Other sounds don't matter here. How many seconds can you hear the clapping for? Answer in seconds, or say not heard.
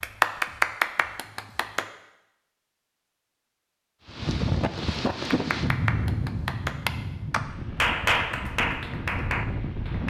7 s.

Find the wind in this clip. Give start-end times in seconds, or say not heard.
4.0-10.0.